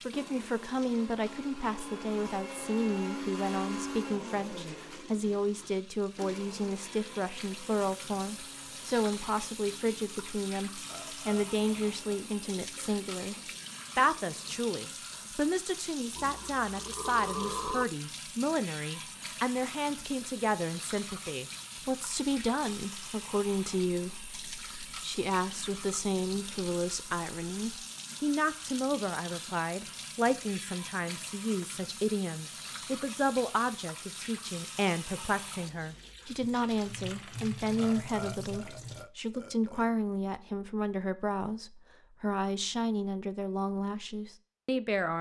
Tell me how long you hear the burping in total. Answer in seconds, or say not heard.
6 s.